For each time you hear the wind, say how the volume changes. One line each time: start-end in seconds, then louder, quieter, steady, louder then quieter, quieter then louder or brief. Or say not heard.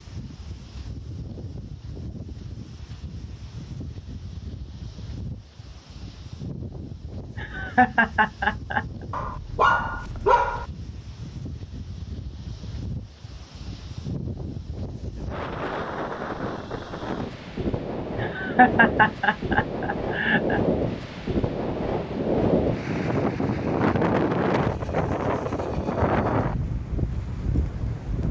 0.0-28.2 louder.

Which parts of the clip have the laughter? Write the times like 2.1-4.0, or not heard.
7.3-8.8, 18.1-20.6.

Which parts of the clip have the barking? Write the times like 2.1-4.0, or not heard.
9.1-10.7.